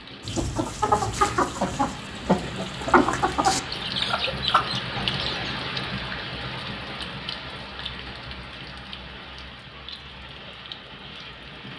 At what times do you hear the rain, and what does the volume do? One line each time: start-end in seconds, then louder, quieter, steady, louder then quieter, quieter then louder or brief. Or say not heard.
0.0-11.7 louder then quieter.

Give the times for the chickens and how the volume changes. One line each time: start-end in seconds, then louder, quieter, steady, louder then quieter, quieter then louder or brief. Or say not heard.
0.2-5.7 quieter.